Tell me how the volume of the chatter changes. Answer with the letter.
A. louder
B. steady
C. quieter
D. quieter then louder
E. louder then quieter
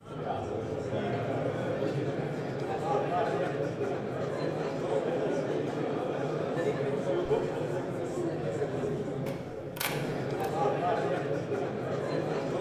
B.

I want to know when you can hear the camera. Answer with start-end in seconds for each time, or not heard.
9.2-10.5.